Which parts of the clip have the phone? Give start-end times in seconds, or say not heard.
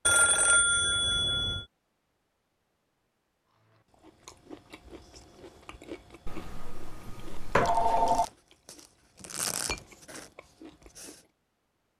0.1-1.6, 6.2-8.2.